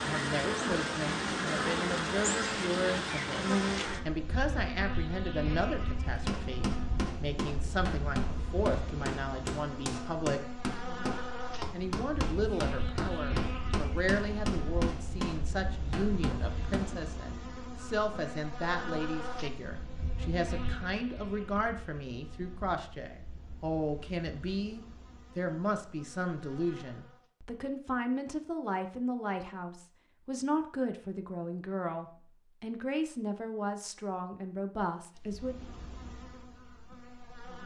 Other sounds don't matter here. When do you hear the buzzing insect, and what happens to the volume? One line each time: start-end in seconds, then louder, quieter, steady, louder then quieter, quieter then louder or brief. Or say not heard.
0.0-27.3 quieter
35.1-37.6 brief.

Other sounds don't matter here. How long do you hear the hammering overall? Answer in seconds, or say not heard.
11 s.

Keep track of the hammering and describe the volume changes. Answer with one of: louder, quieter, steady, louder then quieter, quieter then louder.
steady.